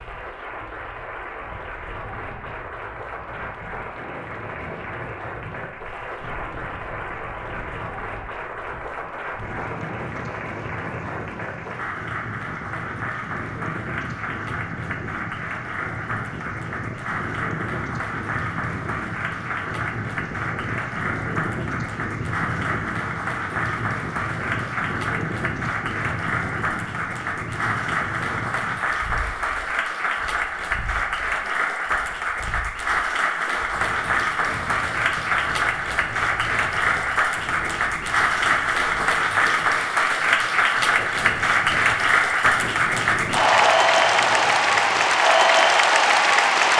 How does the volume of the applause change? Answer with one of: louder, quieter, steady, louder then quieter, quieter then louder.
louder.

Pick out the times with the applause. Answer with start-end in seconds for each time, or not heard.
0.0-46.7.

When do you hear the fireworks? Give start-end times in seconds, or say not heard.
not heard.